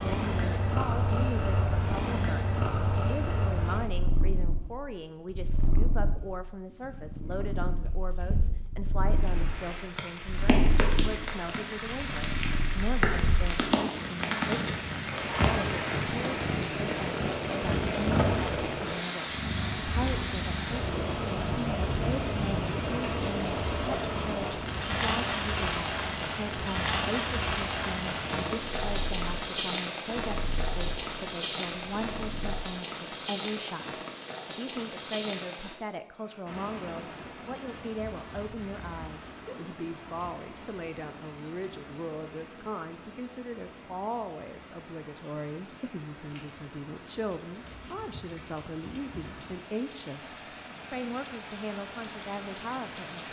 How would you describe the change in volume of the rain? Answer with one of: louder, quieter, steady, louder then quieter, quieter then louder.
quieter.